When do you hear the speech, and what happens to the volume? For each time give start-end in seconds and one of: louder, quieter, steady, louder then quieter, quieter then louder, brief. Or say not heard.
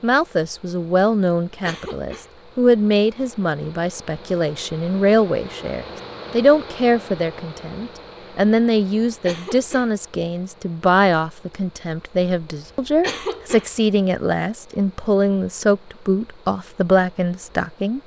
0.0-18.0 steady.